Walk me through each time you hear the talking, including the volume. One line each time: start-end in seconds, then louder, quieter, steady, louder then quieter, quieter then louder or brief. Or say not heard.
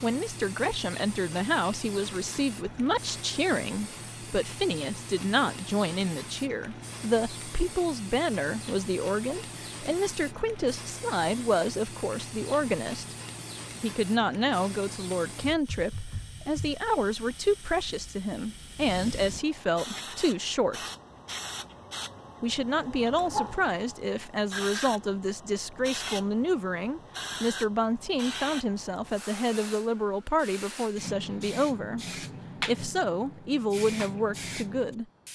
0.0-13.2 steady
13.8-20.9 steady
22.4-35.0 steady.